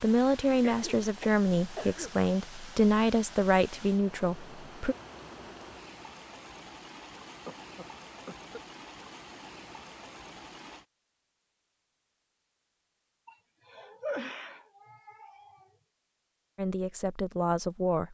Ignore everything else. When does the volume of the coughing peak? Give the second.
14 s.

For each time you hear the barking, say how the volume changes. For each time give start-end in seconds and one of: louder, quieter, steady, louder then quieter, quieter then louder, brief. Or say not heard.
not heard.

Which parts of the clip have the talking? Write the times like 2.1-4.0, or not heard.
0.0-5.0, 16.6-18.1.